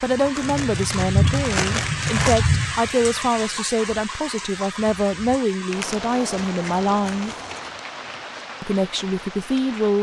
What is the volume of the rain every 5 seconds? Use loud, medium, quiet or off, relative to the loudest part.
loud, medium.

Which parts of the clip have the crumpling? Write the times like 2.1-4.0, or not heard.
0.3-2.4, 5.7-7.8.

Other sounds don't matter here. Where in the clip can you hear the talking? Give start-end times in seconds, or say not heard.
0.0-7.3, 8.6-9.9.